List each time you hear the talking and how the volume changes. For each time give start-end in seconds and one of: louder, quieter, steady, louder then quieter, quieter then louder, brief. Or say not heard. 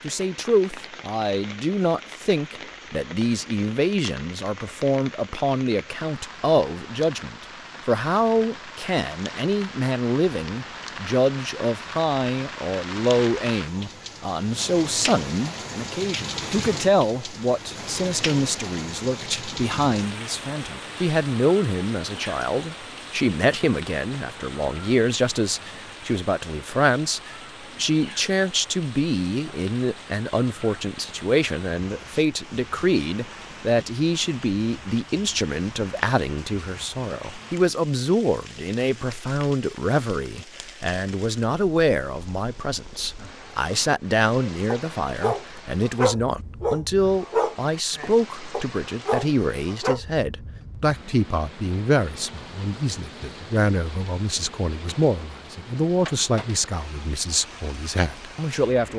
0.0-58.9 steady.